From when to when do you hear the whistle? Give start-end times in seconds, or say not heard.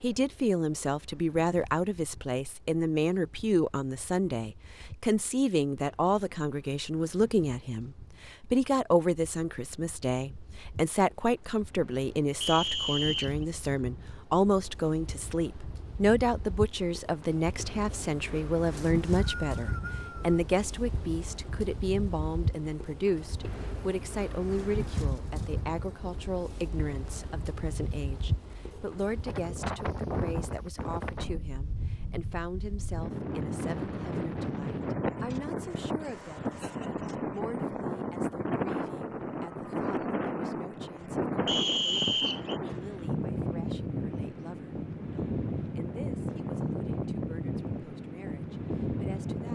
12.4-13.4, 18.8-20.4, 41.5-42.6.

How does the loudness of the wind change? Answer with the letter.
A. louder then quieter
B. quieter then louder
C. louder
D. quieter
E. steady
C.